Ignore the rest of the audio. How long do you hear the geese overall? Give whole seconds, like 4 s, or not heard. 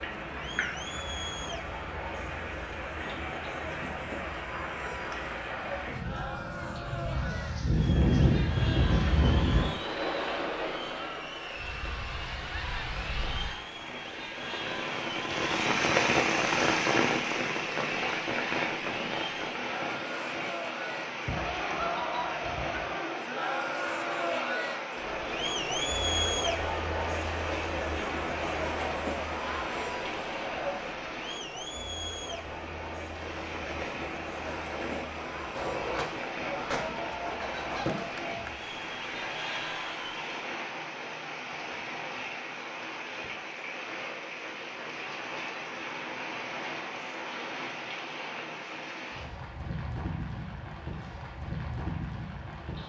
7 s.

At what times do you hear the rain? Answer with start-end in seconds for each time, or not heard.
0.0-52.8.